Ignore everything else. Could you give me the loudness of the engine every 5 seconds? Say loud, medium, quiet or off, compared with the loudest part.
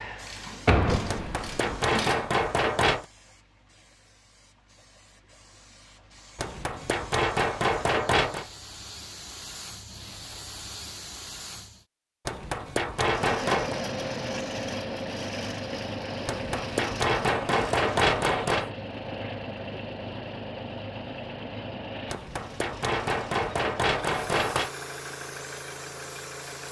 off, off, loud, loud, medium, medium.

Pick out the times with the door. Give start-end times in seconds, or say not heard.
0.7-1.5.